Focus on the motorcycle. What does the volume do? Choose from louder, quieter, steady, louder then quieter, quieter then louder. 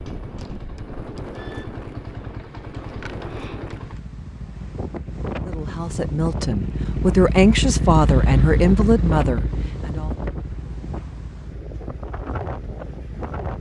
louder then quieter.